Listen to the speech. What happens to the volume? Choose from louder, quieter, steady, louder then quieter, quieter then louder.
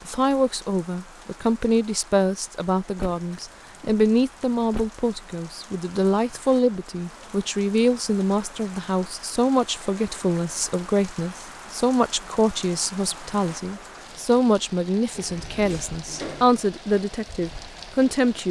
steady.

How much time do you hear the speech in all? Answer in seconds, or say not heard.
18 s.